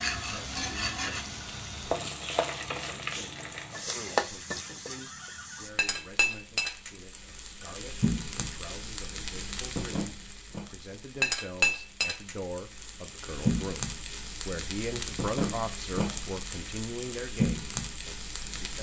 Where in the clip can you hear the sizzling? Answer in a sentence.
You can hear the sizzling from 0.0 to 18.7 s.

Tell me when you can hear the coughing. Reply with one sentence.
You can't hear the coughing here.